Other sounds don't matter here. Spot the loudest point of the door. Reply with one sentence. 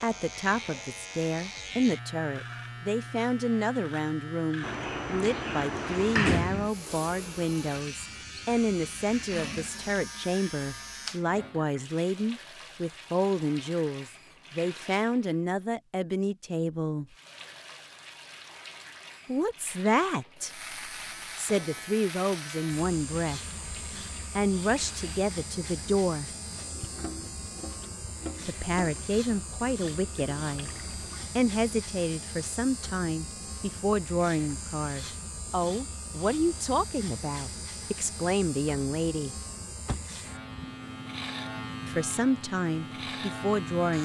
The loudest moment of the door is at 6 seconds.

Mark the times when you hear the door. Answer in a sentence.
You can hear the door from 4.6 to 6.7 s and from 39.9 to 40.5 s.